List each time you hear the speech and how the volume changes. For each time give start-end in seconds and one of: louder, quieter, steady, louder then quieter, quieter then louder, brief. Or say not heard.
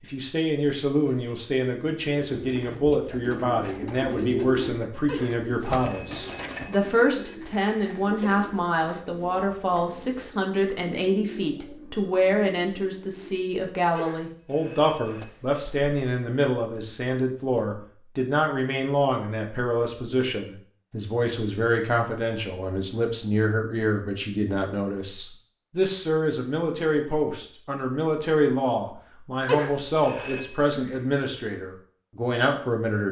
0.0-33.0 steady.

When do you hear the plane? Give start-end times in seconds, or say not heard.
not heard.